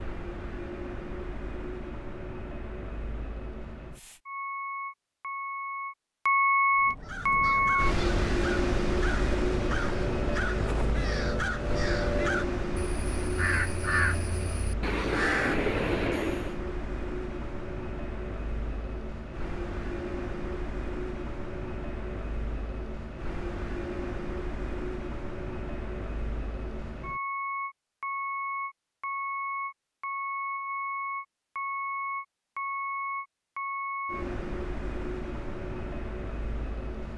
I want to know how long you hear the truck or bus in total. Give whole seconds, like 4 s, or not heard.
37 s.